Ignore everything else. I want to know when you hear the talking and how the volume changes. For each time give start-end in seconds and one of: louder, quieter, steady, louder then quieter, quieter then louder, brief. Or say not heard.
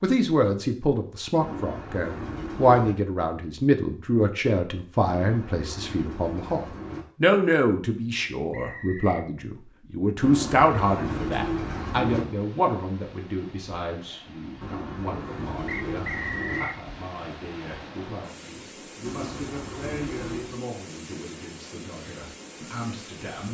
0.0-23.4 quieter.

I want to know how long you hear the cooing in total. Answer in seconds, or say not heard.
9 s.